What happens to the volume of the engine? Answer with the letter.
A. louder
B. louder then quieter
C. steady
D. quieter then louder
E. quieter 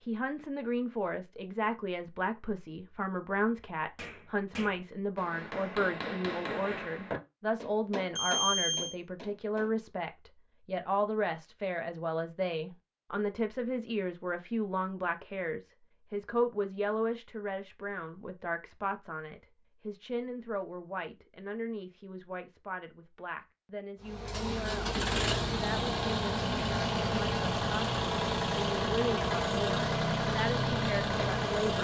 C.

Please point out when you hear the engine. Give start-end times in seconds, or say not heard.
24.0-31.7.